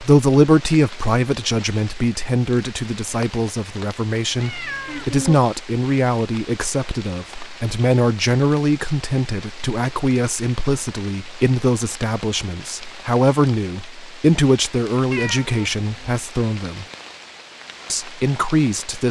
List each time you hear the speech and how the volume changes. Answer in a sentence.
The speech can be heard from 0.0 to 16.9 s, at a steady volume; and briefly from 17.9 to 19.0 s.